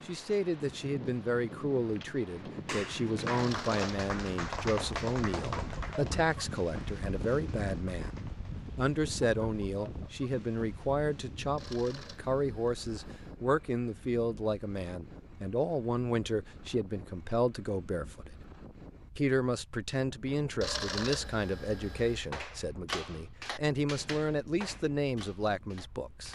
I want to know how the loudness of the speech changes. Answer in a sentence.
The loudness of the speech stays about the same.